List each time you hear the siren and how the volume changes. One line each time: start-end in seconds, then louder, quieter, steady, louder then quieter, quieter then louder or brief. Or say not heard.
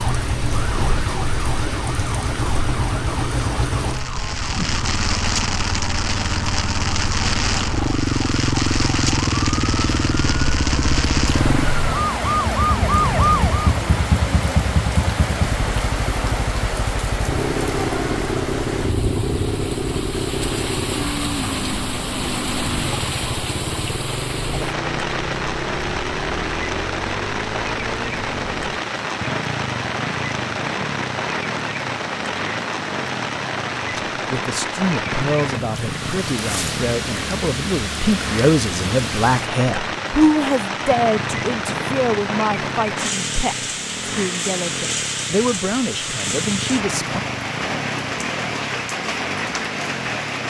0.0-13.7 louder.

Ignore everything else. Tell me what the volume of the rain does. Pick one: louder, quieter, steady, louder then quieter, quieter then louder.
steady.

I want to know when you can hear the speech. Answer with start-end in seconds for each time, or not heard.
34.1-47.2.